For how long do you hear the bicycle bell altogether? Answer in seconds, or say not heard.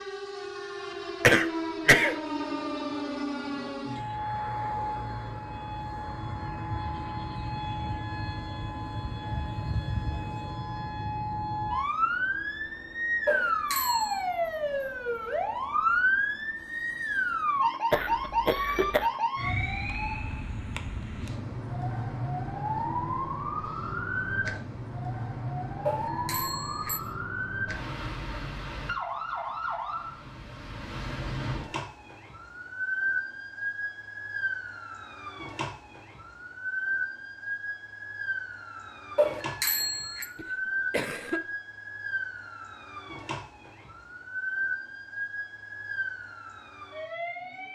3 s.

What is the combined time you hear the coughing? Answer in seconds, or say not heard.
3 s.